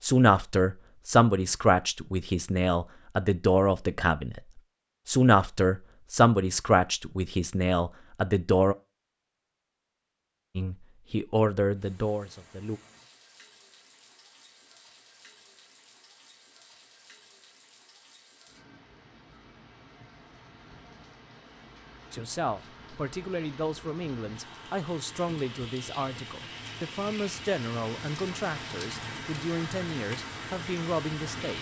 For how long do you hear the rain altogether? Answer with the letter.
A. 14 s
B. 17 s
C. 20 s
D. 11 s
C.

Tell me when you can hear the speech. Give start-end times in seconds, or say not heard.
0.0-4.4, 5.0-8.8, 10.6-12.8, 22.1-31.5.